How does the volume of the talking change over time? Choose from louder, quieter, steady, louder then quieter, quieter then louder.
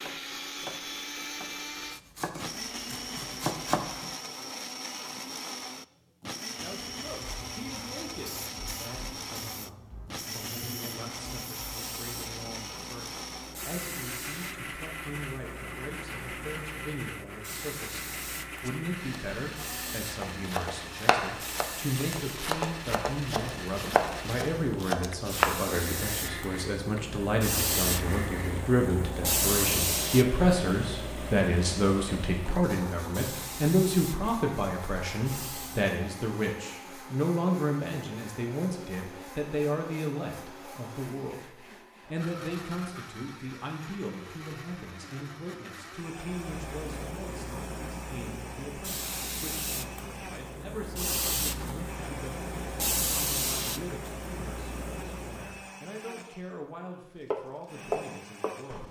louder then quieter.